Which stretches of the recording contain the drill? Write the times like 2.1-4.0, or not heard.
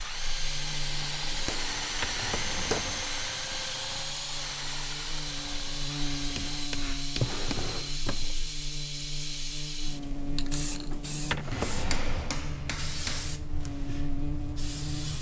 0.0-6.7.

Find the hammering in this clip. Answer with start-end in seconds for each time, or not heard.
1.3-2.9, 6.3-7.9, 11.5-13.3.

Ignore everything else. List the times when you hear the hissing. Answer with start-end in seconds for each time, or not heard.
0.0-15.1.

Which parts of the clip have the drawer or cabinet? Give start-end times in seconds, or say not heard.
1.9-3.1, 7.1-8.3, 11.2-12.3.